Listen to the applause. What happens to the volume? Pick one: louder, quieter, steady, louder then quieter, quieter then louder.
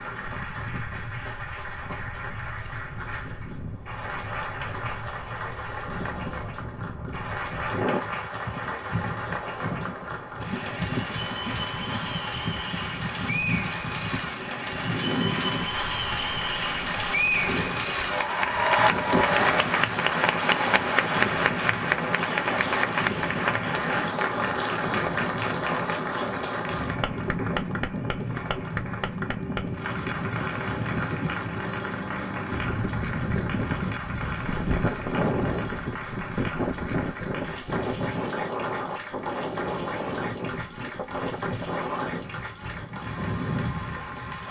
louder then quieter.